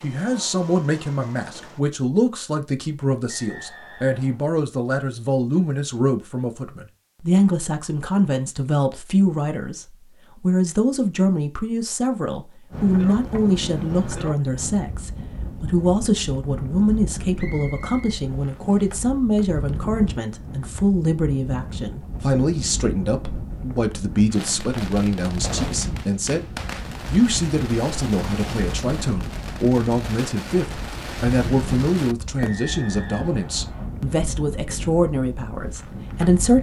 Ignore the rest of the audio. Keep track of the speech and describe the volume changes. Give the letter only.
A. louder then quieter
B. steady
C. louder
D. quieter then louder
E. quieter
B.